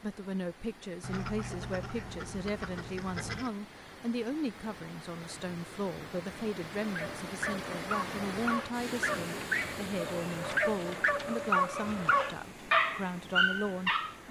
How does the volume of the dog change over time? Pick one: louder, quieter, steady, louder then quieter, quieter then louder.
louder.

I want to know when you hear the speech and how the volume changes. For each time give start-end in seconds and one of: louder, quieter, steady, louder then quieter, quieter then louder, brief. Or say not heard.
0.0-14.2 steady.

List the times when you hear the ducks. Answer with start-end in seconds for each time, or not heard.
1.0-3.5.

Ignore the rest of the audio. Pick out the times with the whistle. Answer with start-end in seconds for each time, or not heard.
not heard.